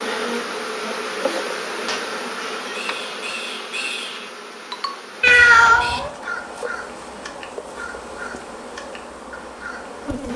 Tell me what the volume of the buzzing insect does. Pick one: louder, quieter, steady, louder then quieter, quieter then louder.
quieter.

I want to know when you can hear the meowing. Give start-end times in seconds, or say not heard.
1.9-2.8, 5.2-6.1.